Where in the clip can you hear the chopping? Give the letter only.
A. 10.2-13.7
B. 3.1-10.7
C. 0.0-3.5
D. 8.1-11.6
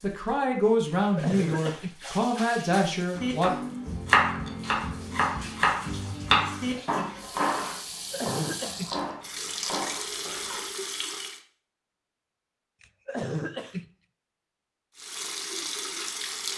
B.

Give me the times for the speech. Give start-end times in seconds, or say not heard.
0.0-3.5.